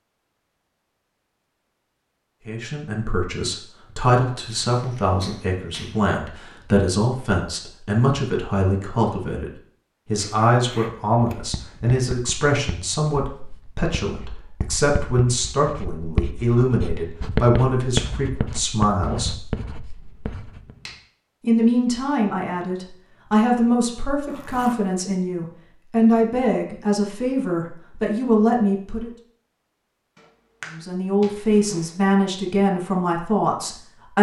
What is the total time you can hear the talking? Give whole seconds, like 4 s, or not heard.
28 s.